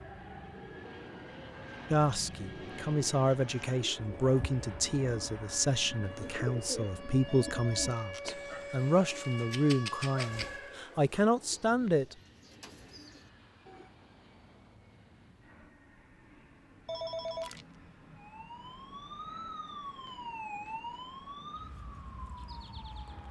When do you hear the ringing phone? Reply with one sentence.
The ringing phone can be heard from 7.2 to 8.2 s and from 16.9 to 17.6 s.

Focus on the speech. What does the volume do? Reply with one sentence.
The volume of the speech stays about the same.